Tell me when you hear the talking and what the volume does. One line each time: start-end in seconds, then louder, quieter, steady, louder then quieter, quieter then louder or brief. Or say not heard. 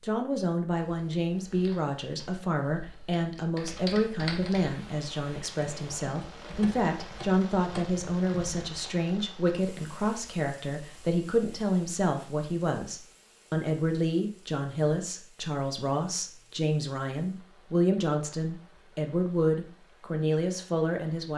0.0-21.3 steady.